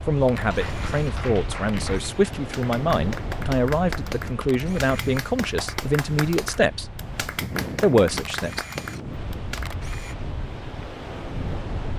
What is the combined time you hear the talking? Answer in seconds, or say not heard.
8 s.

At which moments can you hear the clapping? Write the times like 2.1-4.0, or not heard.
0.3-9.8.